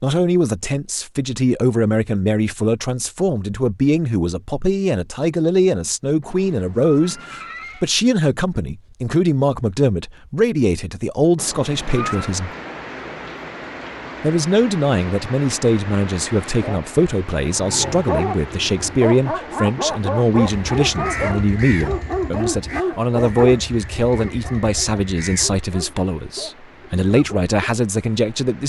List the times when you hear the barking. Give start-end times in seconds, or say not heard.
17.5-27.6.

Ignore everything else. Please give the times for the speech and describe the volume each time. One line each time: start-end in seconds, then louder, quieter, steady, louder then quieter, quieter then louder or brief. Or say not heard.
0.0-12.5 steady
14.2-28.6 steady.